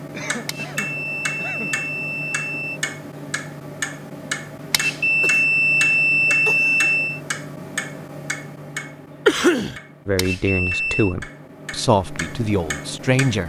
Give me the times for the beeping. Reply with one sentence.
You can hear the beeping from 0.5 to 2.8 s, from 4.7 to 7.2 s and from 10.2 to 11.2 s.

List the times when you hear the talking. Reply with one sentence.
You can hear the talking from 10.1 to 13.4 s.